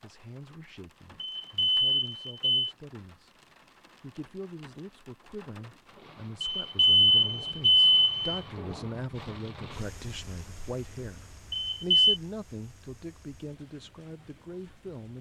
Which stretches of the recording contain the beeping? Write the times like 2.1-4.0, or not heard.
1.2-2.8, 6.6-8.4, 11.7-12.2.